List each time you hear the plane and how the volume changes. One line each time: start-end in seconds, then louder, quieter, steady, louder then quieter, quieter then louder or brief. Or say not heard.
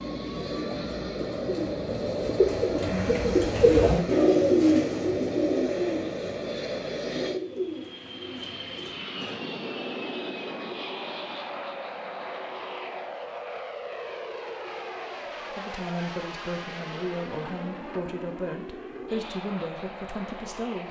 0.0-20.8 quieter.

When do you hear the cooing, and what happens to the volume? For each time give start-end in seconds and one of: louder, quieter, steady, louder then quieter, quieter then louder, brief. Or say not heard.
0.5-9.4 louder then quieter.